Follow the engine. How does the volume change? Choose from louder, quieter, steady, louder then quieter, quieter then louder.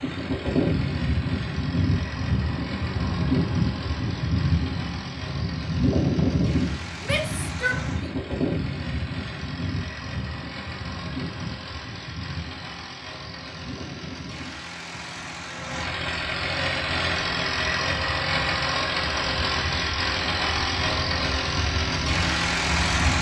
louder.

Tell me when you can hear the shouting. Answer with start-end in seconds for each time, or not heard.
7.0-7.8.